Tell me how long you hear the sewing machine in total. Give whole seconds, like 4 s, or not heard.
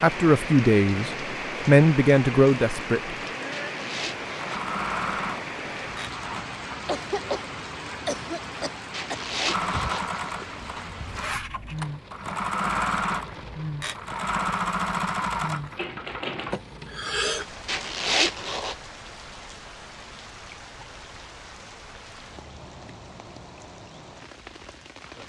9 s.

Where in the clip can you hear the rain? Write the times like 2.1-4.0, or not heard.
0.0-25.2.